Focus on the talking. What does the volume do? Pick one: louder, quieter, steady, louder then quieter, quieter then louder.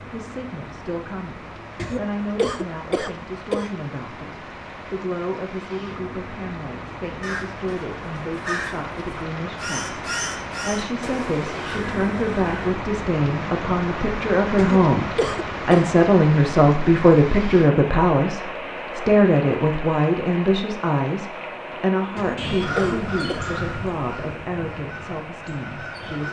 louder then quieter.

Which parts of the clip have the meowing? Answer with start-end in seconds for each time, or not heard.
22.4-23.0.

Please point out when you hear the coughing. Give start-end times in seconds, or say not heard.
1.8-3.7, 14.6-15.8, 22.1-23.4.